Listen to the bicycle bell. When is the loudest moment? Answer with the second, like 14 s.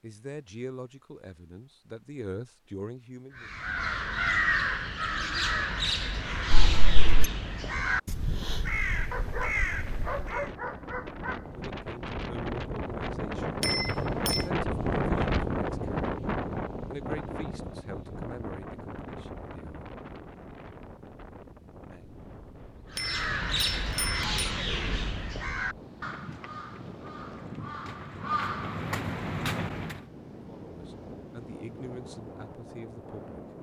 14 s.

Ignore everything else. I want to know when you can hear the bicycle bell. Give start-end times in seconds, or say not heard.
6.5-7.2, 13.6-14.5, 22.9-24.4.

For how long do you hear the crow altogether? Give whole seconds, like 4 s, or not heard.
14 s.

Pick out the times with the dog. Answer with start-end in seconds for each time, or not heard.
9.1-11.4.